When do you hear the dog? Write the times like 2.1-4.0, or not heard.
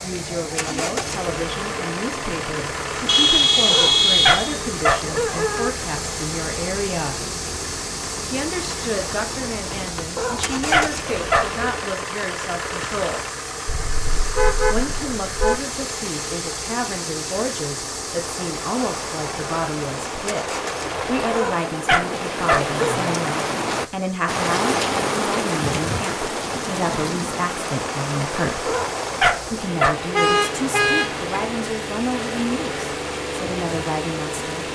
3.7-5.7, 10.2-11.6, 21.3-22.8, 28.6-30.1.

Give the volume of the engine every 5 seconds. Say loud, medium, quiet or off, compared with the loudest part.
loud, loud, loud, loud, medium, medium, loud.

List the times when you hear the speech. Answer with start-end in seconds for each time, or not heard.
0.0-7.2, 8.3-13.2, 14.7-28.7, 29.5-34.5.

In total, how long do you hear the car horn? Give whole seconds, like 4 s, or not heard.
5 s.